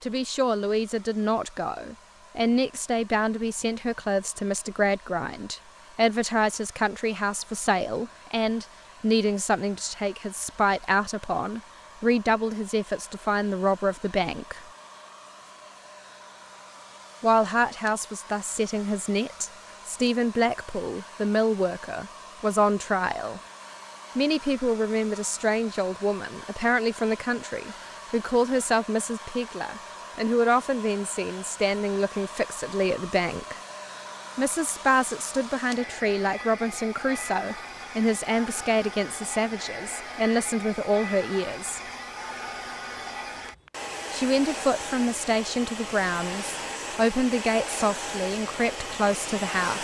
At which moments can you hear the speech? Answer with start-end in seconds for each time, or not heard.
0.0-14.6, 17.2-23.4, 24.1-33.5, 34.4-41.8, 44.1-49.7.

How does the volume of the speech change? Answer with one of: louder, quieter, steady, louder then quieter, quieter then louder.
steady.